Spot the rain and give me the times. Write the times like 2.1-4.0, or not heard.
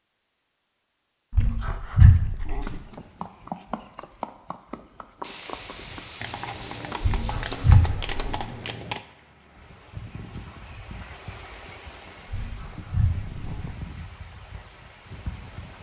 5.2-15.7.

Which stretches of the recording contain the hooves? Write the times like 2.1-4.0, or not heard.
2.6-9.0.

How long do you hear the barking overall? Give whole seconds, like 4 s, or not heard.
4 s.